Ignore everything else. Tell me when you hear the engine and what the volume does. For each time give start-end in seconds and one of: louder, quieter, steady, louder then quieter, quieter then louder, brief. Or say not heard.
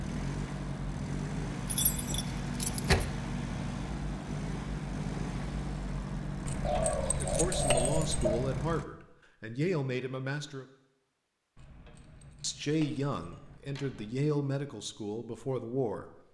0.0-8.8 steady.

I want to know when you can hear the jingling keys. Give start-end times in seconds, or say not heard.
1.6-3.0, 6.5-8.1, 11.6-14.1.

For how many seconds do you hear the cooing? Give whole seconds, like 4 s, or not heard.
2 s.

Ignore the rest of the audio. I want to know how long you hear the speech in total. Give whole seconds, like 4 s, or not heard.
7 s.